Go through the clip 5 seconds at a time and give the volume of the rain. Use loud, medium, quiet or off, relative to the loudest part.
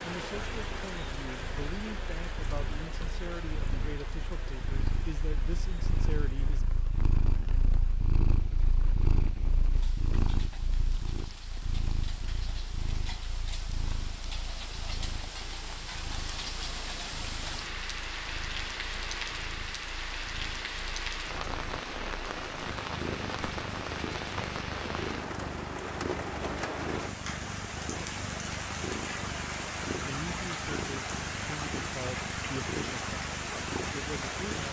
medium, quiet, medium, loud, loud, loud, loud.